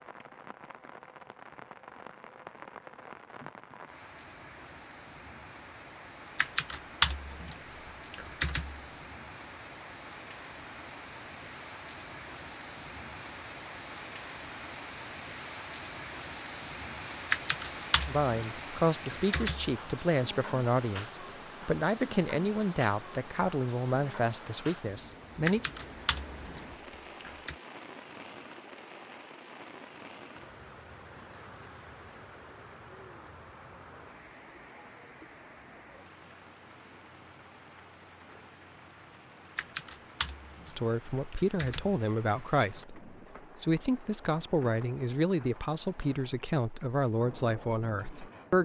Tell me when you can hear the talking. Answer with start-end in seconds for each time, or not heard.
18.1-25.6, 40.7-48.6.